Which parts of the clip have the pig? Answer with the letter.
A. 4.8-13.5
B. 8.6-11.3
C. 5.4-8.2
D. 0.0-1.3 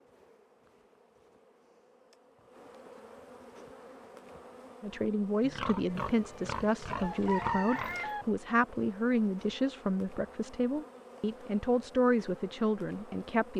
C.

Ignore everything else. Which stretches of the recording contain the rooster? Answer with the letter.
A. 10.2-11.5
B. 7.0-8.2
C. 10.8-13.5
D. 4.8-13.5
B.